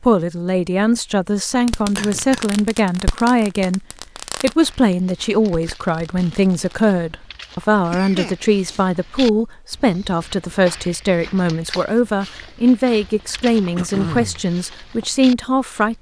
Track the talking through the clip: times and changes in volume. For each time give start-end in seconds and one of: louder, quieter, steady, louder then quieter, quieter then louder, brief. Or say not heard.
0.0-15.9 steady.